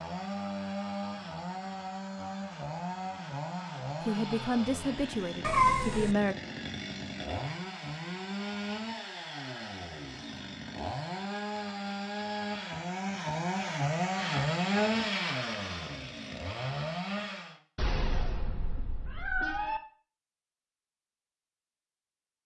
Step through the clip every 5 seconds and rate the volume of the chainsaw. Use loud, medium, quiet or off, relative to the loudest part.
medium, medium, loud, loud, off.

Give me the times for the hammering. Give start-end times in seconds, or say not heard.
not heard.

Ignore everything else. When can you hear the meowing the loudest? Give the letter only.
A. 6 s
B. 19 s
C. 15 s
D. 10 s
A.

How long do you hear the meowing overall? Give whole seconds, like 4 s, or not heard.
3 s.